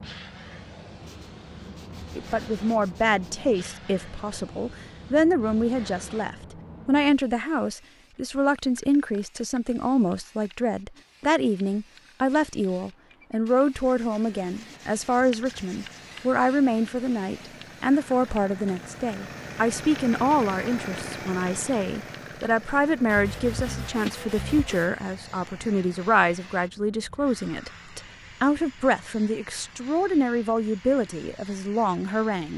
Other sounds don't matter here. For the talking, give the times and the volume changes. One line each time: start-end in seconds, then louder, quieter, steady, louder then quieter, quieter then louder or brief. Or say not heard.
2.1-32.5 steady.